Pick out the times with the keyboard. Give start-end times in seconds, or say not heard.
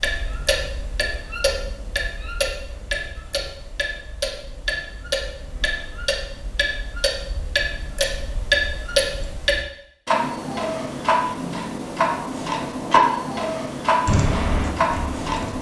14.1-15.5.